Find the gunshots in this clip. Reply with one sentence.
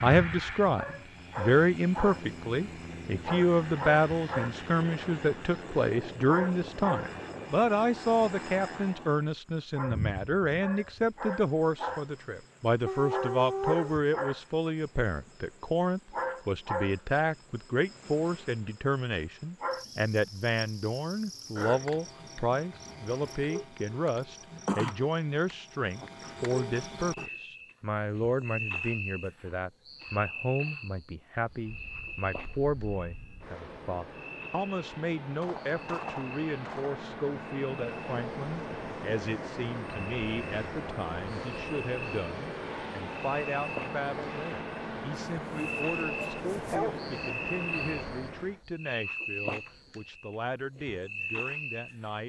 You can hear the gunshots from 35.4 to 37.0 s.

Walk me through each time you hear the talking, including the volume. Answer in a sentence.
The talking can be heard from 0.0 to 52.2 s, getting quieter.